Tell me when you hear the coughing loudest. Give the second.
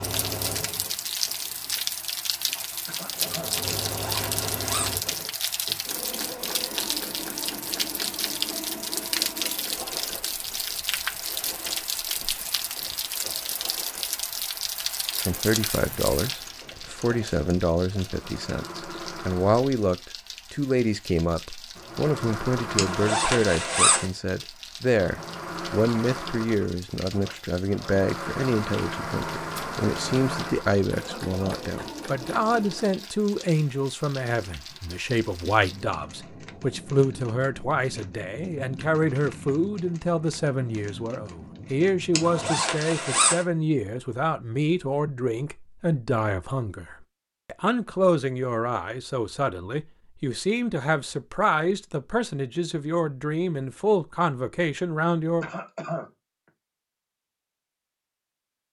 56 s.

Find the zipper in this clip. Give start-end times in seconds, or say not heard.
3.9-4.9, 22.8-24.1, 42.1-43.5.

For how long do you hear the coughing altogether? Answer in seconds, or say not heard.
2 s.